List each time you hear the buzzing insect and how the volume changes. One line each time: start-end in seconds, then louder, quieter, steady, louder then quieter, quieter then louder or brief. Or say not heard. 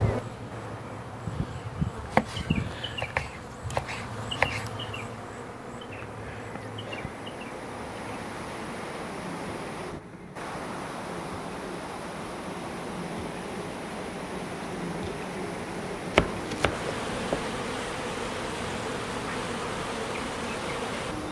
0.0-21.2 quieter then louder.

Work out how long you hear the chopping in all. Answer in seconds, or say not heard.
4 s.